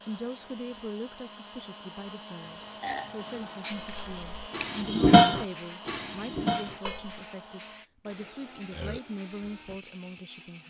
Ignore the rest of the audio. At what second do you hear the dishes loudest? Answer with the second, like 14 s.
5 s.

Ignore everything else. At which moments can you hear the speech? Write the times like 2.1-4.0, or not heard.
0.1-10.6.